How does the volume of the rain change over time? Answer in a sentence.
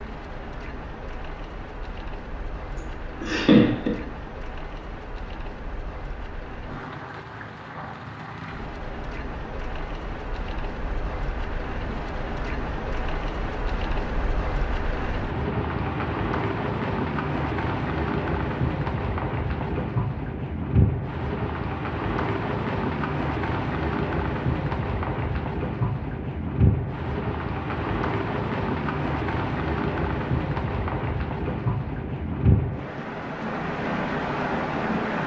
The loudness of the rain goes up.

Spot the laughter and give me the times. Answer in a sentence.
You can hear the laughter from 3.2 to 4.0 s.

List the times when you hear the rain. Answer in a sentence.
You can hear the rain from 0.0 to 35.2 s.